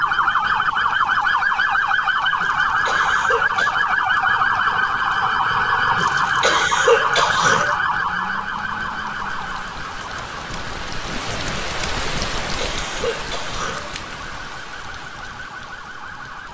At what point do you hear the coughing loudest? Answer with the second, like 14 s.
7 s.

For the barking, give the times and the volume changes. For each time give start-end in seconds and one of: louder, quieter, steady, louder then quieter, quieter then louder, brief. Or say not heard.
not heard.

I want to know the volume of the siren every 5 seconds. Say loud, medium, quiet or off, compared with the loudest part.
loud, loud, quiet, quiet.